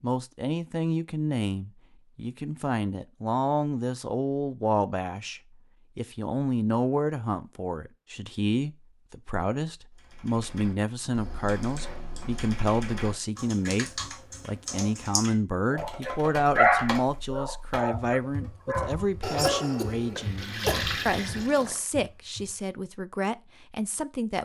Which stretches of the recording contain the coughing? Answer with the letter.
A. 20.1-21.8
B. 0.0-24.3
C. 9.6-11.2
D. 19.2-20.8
D.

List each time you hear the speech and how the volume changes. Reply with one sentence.
The speech can be heard from 0.0 to 24.3 s, at a steady volume.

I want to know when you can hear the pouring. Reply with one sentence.
You can hear the pouring from 20.1 to 21.8 s.